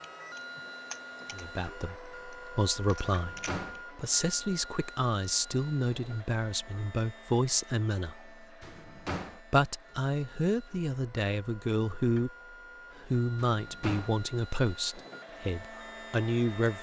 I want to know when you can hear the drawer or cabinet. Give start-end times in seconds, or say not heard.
3.1-3.8, 8.6-9.4, 13.4-14.2.